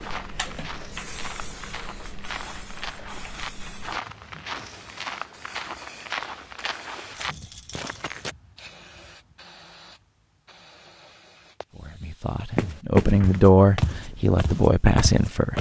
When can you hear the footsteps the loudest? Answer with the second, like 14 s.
13 s.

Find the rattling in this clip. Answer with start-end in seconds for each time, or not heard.
7.1-8.0.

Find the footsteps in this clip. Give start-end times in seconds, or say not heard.
0.0-8.3, 12.6-15.5.